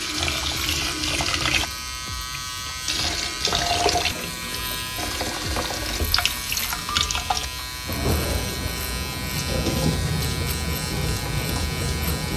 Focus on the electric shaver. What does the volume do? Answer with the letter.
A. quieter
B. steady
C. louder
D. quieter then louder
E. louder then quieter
B.